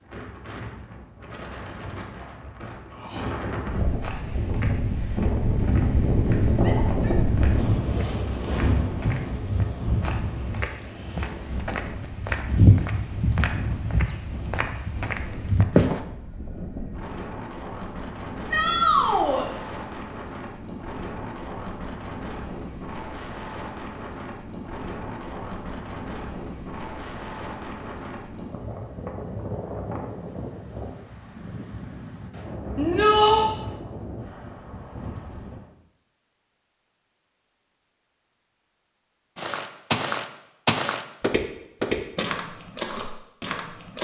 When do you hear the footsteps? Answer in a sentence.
You can hear the footsteps from 4.0 to 16.0 s and from 39.4 to 43.9 s.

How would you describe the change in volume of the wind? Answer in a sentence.
The loudness of the wind goes down.